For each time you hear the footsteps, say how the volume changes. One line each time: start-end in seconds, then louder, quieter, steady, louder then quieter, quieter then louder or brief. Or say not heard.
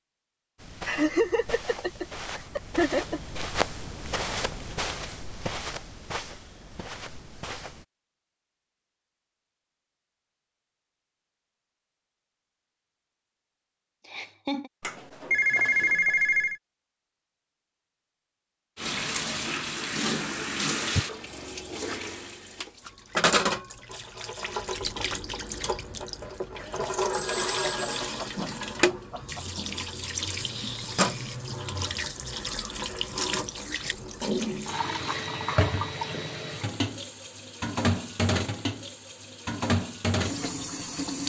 0.6-7.8 louder then quieter.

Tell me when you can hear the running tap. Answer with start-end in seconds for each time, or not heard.
18.8-41.2.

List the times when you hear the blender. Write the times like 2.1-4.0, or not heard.
not heard.